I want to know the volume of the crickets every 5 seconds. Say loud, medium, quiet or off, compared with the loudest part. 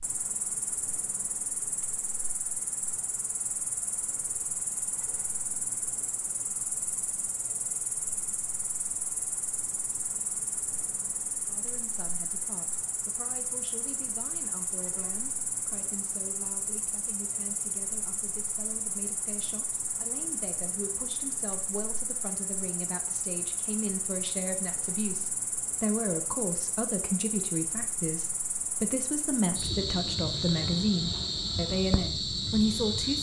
medium, medium, medium, medium, medium, medium, loud.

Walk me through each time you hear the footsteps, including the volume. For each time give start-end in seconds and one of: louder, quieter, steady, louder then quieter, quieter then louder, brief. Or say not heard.
not heard.